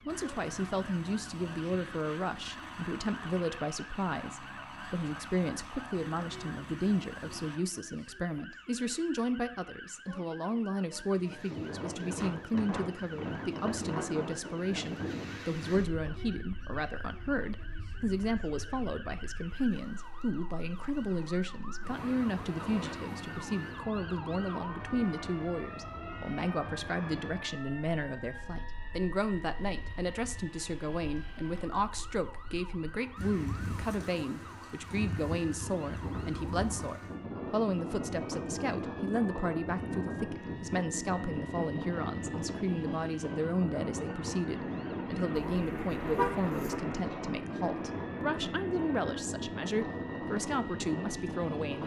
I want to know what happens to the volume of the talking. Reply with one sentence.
The loudness of the talking stays about the same.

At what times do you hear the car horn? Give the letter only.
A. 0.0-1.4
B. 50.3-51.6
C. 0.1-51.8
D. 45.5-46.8
D.